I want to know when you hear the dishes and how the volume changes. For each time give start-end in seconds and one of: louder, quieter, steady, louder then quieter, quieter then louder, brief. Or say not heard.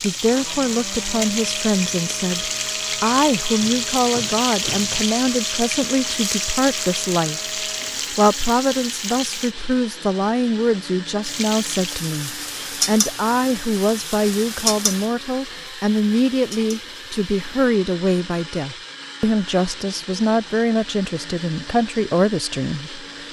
not heard.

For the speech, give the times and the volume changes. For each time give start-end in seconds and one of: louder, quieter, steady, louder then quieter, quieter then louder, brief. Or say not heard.
0.0-23.2 steady.